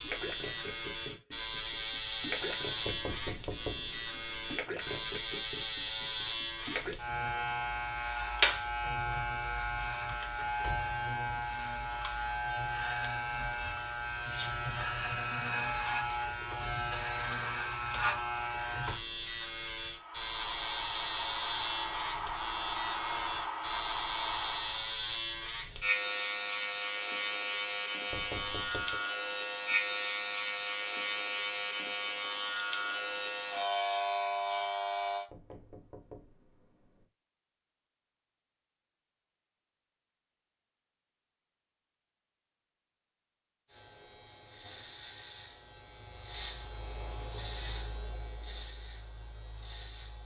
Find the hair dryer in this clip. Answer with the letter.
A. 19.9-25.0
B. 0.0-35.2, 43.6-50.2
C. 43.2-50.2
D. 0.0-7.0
A.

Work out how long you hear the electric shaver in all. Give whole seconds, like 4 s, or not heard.
42 s.